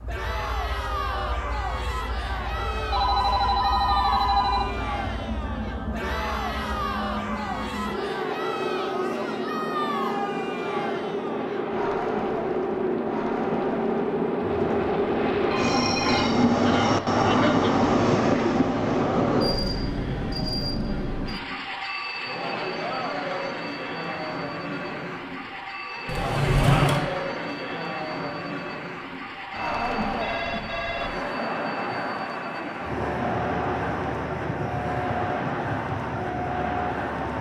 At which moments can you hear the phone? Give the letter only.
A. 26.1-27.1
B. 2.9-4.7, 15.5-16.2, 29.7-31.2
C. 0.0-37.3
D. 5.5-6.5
B.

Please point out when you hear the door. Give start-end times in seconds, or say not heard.
26.1-27.1.